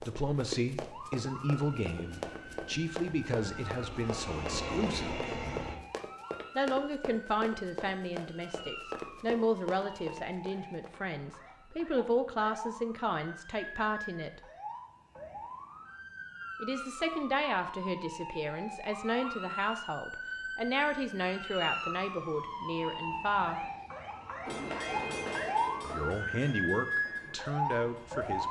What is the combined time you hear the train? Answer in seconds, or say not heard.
8 s.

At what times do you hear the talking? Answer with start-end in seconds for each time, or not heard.
0.0-5.2, 6.5-14.4, 16.6-23.6, 25.8-28.4.